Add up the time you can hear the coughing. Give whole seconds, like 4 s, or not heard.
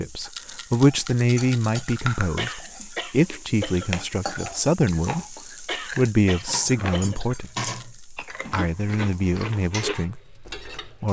3 s.